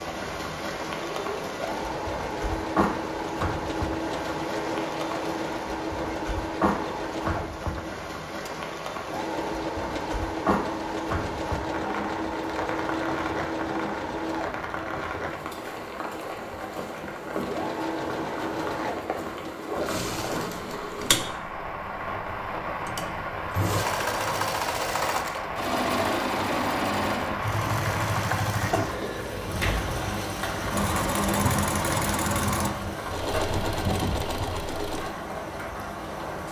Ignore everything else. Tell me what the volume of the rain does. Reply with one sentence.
The loudness of the rain stays about the same.